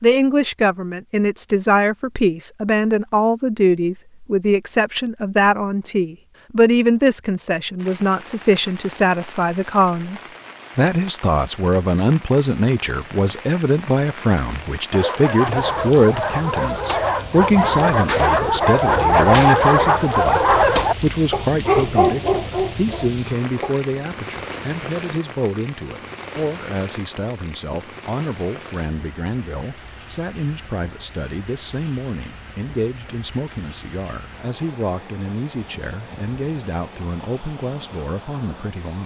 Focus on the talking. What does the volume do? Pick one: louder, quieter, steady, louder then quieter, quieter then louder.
quieter.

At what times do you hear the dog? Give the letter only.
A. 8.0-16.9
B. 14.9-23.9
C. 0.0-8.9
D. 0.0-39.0
B.